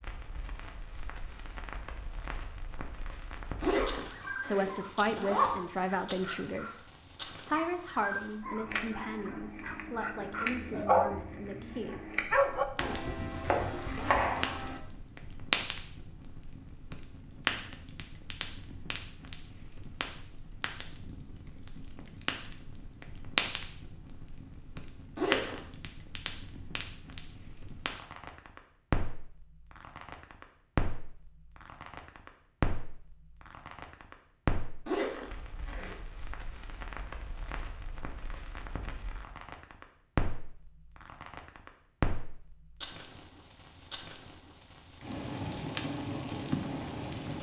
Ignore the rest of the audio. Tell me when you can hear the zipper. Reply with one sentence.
The zipper can be heard from 3.6 to 5.5 s, from 25.1 to 25.6 s and from 34.9 to 36.0 s.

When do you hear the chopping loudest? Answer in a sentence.
The volume of the chopping peaks at 14 seconds.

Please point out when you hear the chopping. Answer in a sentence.
You can hear the chopping from 12.8 to 14.8 s.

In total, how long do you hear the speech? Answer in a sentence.
You can hear the speech for 7 seconds altogether.